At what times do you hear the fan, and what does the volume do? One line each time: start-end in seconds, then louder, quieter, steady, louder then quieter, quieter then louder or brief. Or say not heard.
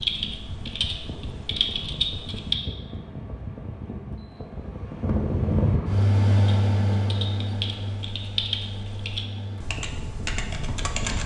0.0-11.2 louder then quieter.